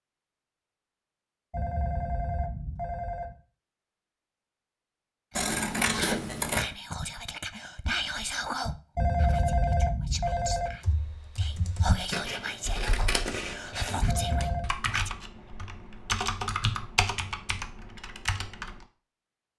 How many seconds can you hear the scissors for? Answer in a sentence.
The scissors can be heard for 3 seconds in total.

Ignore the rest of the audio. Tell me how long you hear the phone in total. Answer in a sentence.
You can hear the phone for 4 seconds altogether.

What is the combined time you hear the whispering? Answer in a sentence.
The whispering can be heard for 10 seconds in total.